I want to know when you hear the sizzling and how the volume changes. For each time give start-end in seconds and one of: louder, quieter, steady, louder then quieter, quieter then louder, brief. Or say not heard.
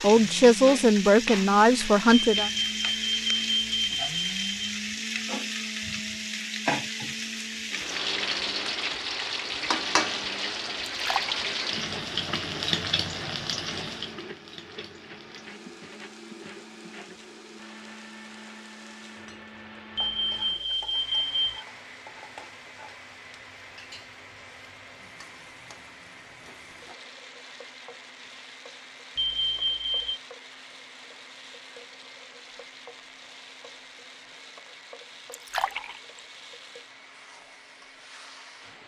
0.0-38.8 quieter.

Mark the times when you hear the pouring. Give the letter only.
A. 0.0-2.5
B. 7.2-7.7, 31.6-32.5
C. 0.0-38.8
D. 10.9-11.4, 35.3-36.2
D.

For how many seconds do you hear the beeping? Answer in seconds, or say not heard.
5 s.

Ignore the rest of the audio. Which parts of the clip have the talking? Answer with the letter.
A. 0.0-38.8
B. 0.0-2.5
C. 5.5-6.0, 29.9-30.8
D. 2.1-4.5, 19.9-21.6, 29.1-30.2
B.